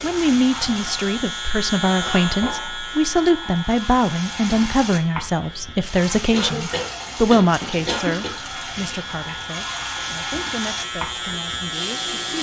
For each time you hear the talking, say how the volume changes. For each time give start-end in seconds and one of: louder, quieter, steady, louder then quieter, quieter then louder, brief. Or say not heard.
0.0-12.3 quieter.